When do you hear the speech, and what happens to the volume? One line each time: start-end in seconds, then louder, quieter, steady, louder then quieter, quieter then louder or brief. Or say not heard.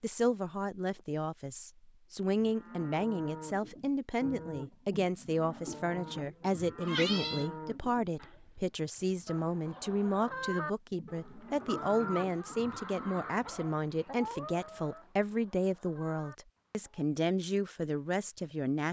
0.0-18.8 steady.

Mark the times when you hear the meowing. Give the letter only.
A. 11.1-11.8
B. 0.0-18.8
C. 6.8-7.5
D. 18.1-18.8
C.